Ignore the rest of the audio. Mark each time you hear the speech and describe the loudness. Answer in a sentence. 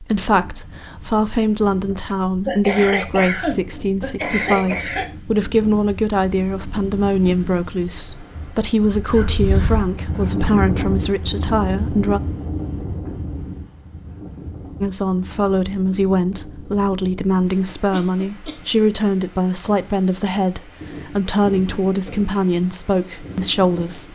The speech can be heard from 0.0 to 12.2 s, at a steady volume; and from 14.8 to 24.1 s, at a steady volume.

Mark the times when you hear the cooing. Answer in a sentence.
The cooing can't be heard in this clip.